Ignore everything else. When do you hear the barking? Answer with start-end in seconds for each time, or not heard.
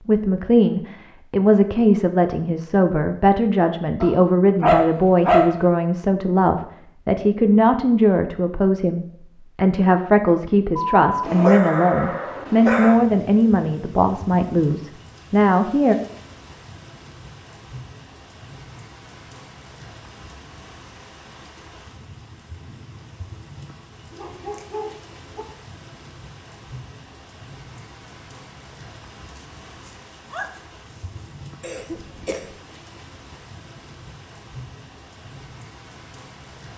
4.0-5.7, 11.0-13.0, 24.1-25.4, 29.4-31.2.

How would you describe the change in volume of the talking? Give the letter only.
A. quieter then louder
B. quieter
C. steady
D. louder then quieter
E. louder
C.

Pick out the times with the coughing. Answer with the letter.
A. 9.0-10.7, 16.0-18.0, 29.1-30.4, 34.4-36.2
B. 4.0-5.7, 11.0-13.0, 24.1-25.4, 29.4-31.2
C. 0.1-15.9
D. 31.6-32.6
D.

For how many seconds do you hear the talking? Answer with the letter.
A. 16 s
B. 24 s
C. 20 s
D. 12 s
A.